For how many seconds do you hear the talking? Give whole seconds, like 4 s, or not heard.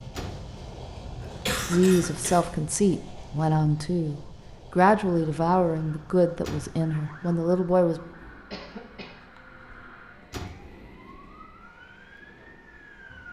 6 s.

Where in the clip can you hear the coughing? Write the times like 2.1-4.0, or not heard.
1.2-2.4, 8.5-9.2.